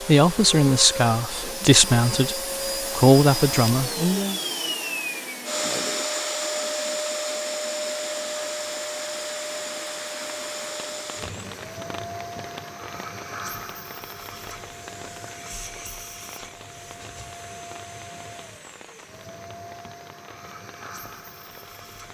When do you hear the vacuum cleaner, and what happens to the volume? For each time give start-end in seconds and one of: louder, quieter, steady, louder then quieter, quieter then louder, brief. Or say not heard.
0.0-22.0 quieter.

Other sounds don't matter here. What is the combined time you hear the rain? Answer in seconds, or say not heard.
14 s.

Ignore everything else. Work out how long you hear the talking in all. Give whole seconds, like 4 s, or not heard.
4 s.